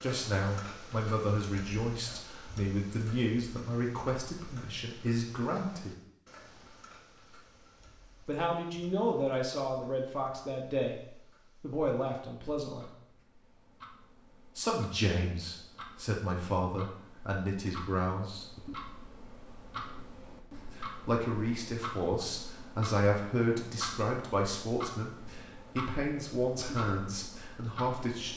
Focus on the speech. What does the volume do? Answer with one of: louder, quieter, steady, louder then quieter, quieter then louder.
steady.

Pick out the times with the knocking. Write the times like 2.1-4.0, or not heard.
not heard.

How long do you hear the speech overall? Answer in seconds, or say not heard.
22 s.